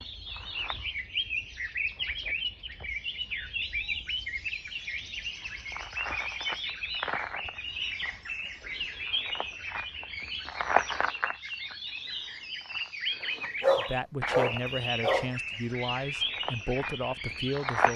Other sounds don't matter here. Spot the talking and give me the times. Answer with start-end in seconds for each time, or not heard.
13.8-17.9.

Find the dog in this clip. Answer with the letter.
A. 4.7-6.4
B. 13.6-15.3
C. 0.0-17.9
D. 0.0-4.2
B.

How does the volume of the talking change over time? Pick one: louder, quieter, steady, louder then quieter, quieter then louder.
steady.